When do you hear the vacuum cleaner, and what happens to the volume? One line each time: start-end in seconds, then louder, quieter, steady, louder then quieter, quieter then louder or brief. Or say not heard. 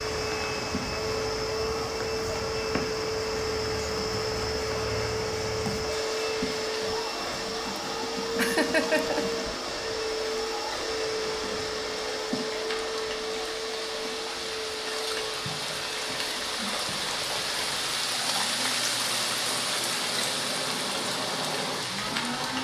0.0-22.5 quieter.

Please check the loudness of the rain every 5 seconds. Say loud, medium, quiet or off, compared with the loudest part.
medium, medium, medium, loud, loud.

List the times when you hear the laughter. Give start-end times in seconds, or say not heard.
7.7-9.2.